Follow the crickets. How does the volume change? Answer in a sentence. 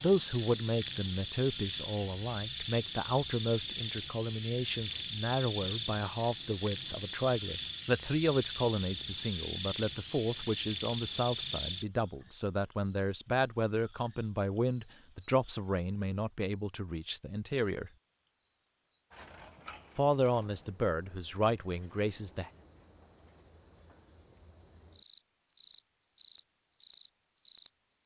The volume of the crickets goes down.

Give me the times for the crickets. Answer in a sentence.
You can hear the crickets from 0.0 to 28.0 s.